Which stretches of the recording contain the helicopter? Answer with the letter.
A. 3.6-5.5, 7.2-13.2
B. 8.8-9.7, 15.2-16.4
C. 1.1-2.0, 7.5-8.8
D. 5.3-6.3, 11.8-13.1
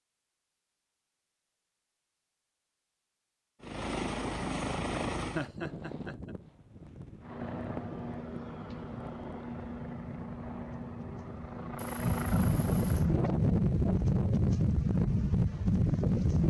A.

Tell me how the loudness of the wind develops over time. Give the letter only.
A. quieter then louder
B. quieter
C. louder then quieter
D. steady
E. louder
E.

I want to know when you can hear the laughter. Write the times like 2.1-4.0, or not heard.
5.3-6.3, 11.8-13.1.